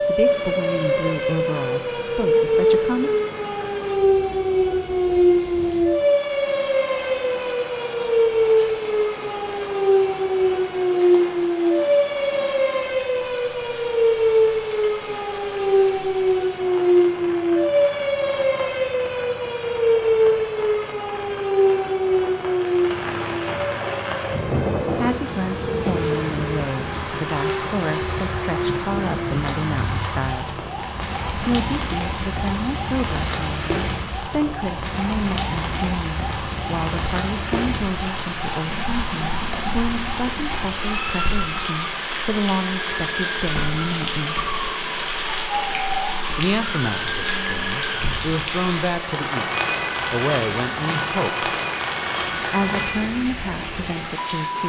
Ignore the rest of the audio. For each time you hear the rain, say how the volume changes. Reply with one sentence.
The rain can be heard from 0.0 to 54.6 s, getting louder.